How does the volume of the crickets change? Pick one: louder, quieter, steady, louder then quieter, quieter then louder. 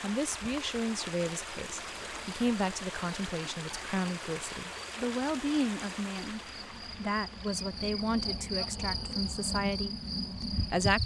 louder.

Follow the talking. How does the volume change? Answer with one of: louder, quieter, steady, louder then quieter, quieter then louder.
steady.